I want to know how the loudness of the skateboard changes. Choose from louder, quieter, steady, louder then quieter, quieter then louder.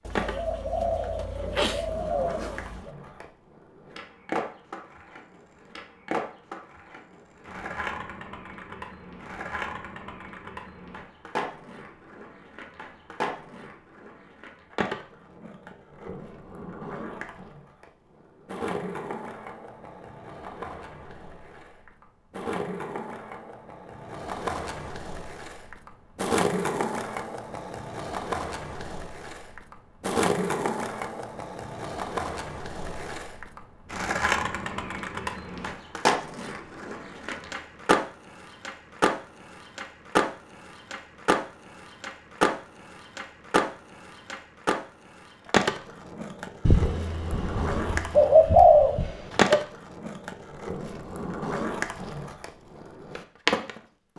louder.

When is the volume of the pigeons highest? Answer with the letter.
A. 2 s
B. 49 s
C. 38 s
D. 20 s
B.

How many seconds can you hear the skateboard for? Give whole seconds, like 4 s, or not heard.
54 s.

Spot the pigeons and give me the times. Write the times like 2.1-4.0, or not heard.
0.1-2.9, 46.6-49.6.